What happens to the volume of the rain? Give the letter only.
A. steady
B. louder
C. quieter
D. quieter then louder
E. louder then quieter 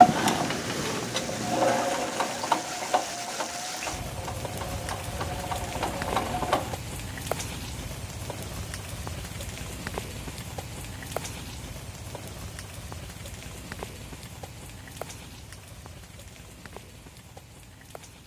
C.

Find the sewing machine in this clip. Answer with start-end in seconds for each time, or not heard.
0.0-6.8.